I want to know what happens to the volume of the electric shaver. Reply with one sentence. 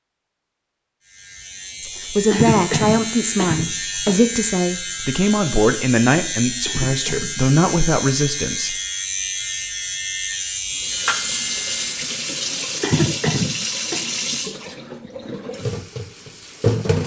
The volume of the electric shaver stays about the same.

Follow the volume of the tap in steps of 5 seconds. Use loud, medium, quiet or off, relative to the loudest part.
off, off, loud, loud.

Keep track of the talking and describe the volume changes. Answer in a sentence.
The volume of the talking stays about the same.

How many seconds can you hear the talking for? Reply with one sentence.
The talking can be heard for 7 seconds in total.